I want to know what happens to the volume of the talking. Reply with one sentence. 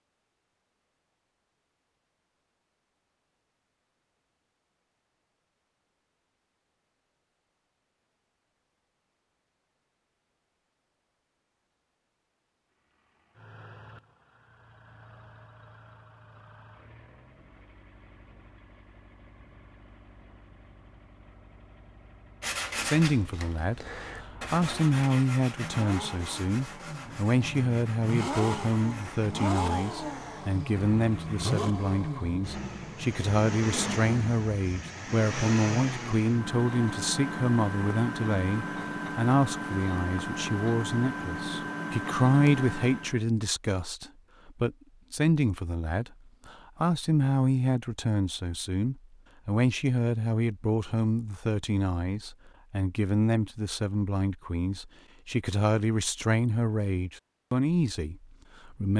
The volume of the talking stays about the same.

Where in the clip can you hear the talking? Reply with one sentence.
The talking can be heard from 22.8 to 58.9 s.